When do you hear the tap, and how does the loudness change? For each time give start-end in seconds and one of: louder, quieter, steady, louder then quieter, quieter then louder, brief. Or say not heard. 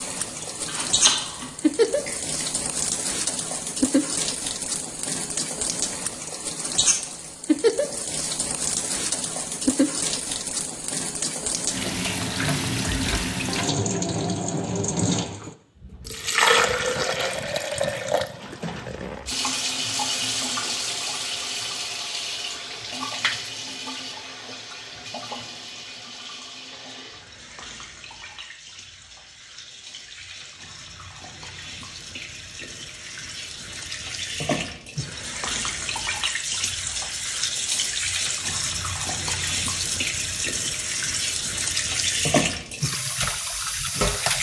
0.0-44.3 quieter then louder.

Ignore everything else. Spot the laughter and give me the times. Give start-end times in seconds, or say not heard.
not heard.